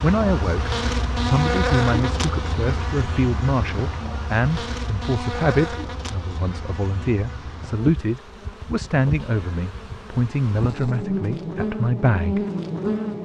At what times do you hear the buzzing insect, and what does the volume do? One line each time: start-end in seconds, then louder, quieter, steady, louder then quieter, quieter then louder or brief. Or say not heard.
0.0-13.1 quieter then louder.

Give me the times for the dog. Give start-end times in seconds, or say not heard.
not heard.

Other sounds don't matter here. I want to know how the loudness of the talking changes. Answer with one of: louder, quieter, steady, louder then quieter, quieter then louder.
steady.